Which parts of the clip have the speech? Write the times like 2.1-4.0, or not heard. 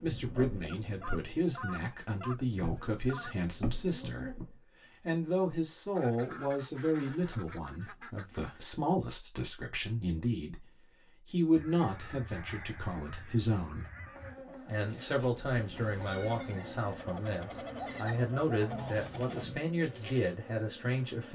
0.0-13.8, 14.7-21.2.